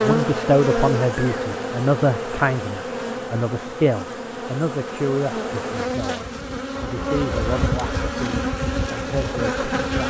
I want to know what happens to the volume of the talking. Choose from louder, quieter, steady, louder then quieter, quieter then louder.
quieter.